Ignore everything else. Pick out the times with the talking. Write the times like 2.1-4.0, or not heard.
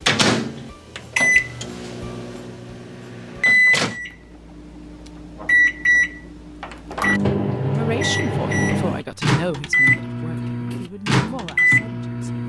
7.7-12.2.